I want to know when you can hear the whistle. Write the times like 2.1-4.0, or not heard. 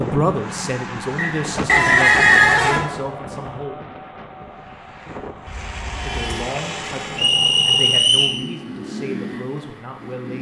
1.1-2.5, 7.2-8.4.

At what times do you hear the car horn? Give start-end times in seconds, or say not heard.
1.6-2.9, 5.5-7.3.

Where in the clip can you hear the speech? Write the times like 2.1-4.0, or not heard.
0.0-3.9, 6.0-10.3.